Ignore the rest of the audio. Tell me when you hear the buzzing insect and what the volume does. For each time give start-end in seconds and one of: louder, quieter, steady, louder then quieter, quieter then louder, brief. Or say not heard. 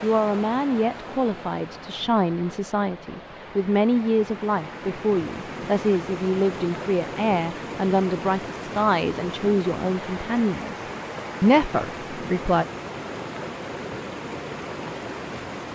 not heard.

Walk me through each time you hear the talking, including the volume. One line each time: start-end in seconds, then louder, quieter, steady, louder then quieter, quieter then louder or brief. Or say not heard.
0.0-10.8 steady
11.4-12.7 brief.